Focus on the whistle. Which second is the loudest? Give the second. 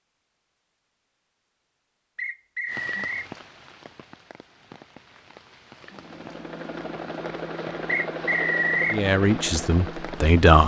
9 s.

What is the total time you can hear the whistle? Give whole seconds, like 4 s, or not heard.
2 s.